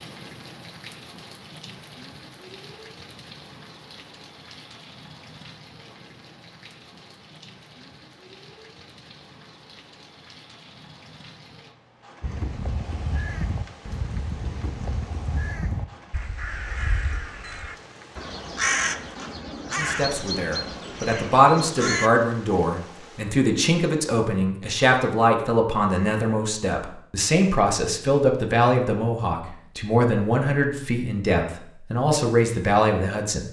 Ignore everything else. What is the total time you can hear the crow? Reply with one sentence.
You can hear the crow for 10 seconds altogether.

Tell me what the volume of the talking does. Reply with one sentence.
The volume of the talking stays about the same.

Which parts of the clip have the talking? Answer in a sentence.
You can hear the talking from 19.7 to 33.4 s.